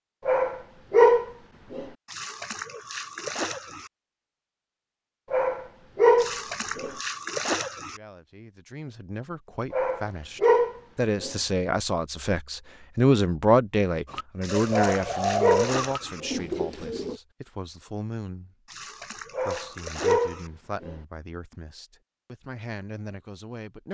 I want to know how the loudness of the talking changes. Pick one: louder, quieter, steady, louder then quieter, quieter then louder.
louder then quieter.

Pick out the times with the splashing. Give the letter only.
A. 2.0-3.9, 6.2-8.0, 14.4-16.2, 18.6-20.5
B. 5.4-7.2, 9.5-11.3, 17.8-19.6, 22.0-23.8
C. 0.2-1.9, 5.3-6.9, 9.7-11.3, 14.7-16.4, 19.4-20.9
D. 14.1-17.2
A.